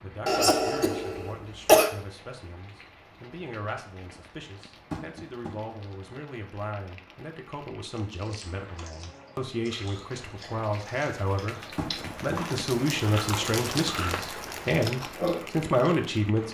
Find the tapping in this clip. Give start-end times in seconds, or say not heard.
4.9-5.5, 11.8-12.4.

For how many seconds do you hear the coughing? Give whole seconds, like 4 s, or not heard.
2 s.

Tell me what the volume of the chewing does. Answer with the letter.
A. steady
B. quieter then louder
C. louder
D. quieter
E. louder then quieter
C.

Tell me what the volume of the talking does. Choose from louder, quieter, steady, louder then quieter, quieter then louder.
louder.